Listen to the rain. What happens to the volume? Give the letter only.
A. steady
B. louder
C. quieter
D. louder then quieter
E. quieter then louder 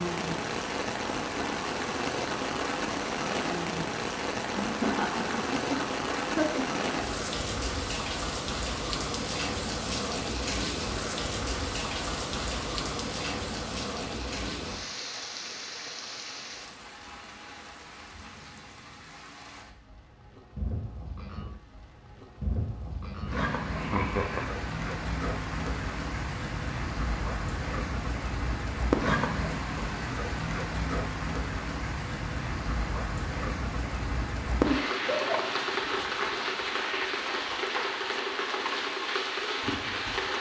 E.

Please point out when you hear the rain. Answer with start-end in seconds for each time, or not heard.
0.0-40.3.